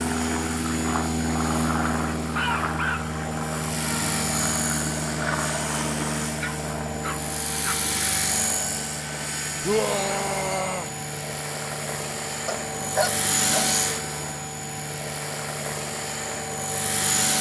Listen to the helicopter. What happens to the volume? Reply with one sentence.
The volume of the helicopter stays about the same.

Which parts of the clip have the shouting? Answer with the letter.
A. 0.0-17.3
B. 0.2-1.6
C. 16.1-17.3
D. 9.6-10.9
D.